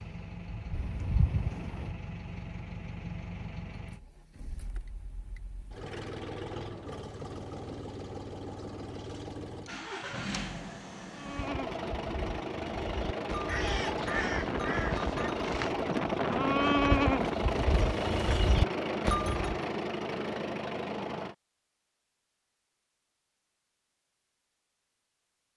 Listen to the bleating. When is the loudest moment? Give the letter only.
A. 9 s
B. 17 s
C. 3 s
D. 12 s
B.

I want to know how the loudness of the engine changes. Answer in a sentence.
The loudness of the engine goes up.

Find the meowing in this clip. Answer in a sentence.
You can hear the meowing from 0.7 to 1.9 s.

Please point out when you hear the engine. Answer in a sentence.
You can hear the engine from 0.0 to 21.4 s.